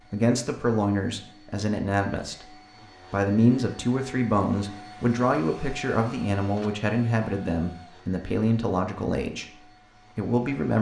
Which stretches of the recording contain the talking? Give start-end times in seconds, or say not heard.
0.1-10.7.